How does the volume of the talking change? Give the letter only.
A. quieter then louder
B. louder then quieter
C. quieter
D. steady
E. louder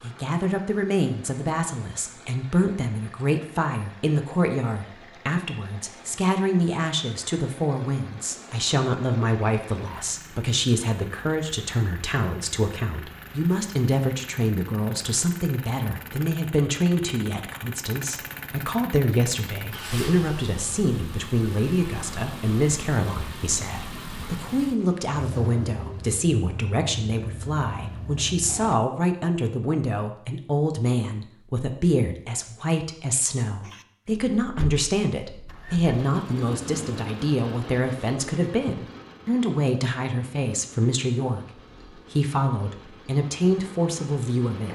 D.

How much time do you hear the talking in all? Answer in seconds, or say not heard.
45 s.